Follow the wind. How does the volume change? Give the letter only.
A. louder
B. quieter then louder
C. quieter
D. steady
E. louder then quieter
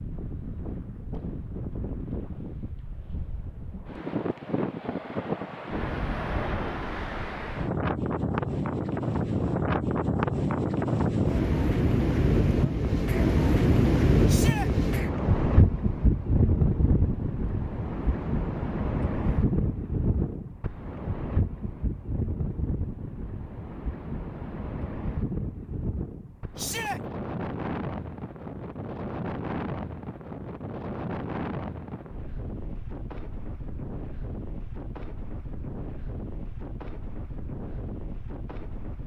E.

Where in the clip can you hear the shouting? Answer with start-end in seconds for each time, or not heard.
14.2-14.7, 26.6-27.0.